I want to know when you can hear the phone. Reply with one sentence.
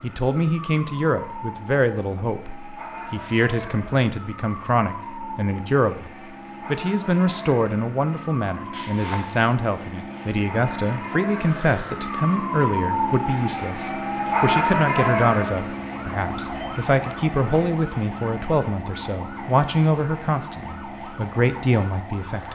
The phone can be heard from 8.7 to 9.3 s.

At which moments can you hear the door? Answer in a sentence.
The door can't be heard in this clip.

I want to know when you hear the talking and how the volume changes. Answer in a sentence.
You can hear the talking from 0.0 to 22.4 s, at a steady volume.